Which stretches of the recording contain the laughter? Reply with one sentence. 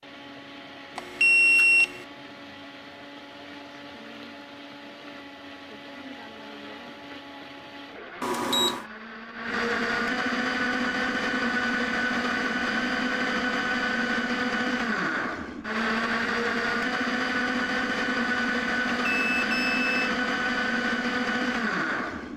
The laughter can't be heard in this clip.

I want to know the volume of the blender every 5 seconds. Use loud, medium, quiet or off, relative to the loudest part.
quiet, medium, loud, loud, loud.